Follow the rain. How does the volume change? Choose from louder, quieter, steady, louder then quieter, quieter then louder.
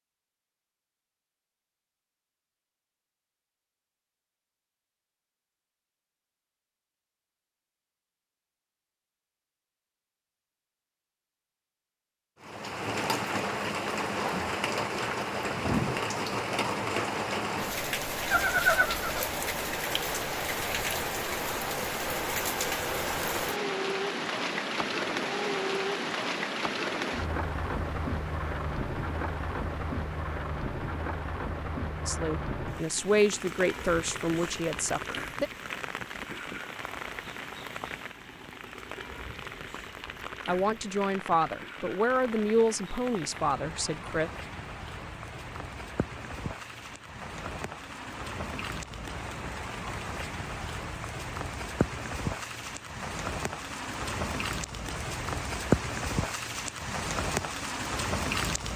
quieter then louder.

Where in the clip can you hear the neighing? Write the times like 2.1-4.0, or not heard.
18.3-19.3.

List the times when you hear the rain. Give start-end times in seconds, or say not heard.
12.4-58.7.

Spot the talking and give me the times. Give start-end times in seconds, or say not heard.
32.0-35.5, 40.5-44.3.